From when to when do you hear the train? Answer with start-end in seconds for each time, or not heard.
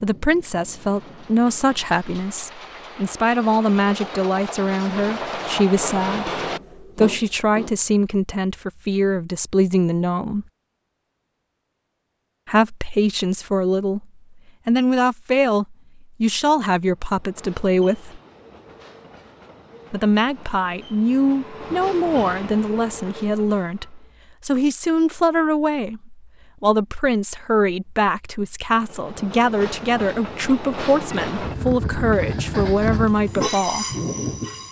0.0-7.9, 16.9-24.1, 28.8-34.6.